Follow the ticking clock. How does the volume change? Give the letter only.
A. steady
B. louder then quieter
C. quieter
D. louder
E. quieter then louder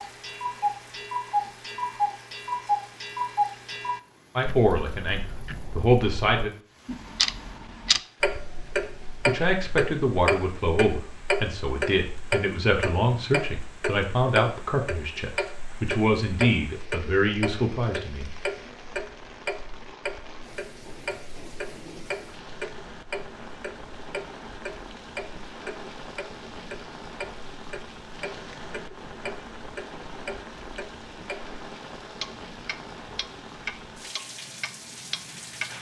C.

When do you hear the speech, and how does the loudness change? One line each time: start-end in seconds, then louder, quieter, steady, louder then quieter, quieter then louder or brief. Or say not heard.
4.3-6.5 brief
9.2-18.3 steady.